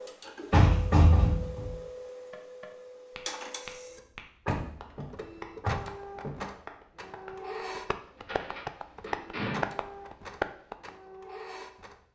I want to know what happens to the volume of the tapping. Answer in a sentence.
The volume of the tapping goes up.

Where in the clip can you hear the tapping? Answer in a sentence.
The tapping can be heard from 2.3 to 10.9 s.